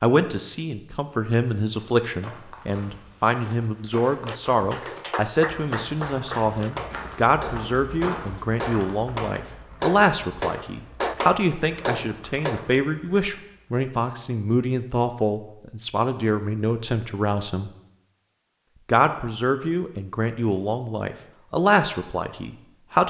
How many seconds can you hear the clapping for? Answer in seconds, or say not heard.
9 s.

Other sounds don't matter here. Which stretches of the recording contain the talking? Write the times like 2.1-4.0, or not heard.
0.0-17.7, 18.9-23.0.